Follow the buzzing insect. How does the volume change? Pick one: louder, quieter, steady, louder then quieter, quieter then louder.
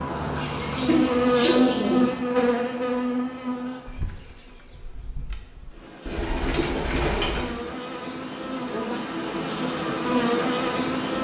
quieter then louder.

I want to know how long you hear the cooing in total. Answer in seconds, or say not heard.
3 s.